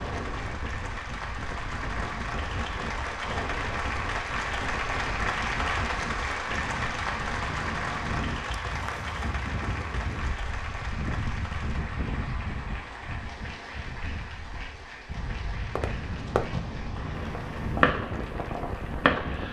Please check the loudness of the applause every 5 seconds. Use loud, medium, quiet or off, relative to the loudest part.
loud, loud, medium, quiet.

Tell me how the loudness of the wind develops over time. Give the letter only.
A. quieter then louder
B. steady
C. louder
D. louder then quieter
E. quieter
B.